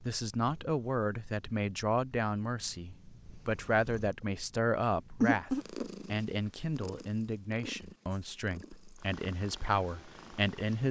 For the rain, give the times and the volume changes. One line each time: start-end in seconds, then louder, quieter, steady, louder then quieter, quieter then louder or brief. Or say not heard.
not heard.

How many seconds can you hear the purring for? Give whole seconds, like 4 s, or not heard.
11 s.